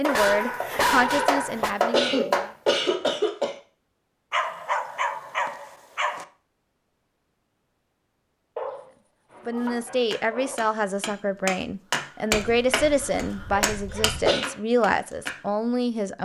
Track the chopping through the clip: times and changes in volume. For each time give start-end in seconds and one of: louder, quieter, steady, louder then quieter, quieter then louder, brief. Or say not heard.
0.0-2.5 brief
9.3-15.3 louder then quieter.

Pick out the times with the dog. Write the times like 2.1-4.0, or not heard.
0.1-1.7, 4.3-6.2, 8.6-10.6, 12.3-14.3.